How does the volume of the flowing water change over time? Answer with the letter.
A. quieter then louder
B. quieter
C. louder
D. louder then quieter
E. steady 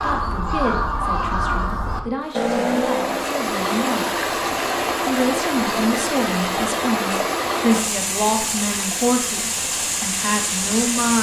E.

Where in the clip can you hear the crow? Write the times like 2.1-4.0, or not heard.
0.0-3.4.